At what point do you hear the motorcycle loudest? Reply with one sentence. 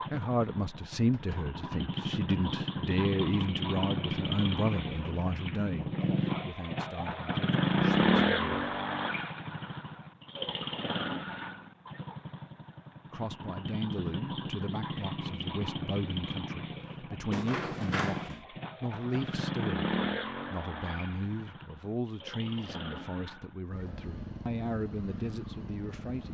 The loudest moment of the motorcycle is at 8 seconds.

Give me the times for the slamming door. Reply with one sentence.
The slamming door can be heard from 1.1 to 1.6 s and from 17.3 to 18.4 s.